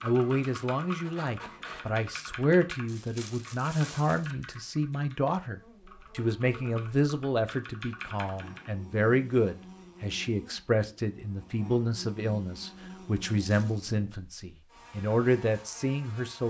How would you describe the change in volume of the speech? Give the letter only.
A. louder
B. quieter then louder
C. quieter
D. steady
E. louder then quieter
D.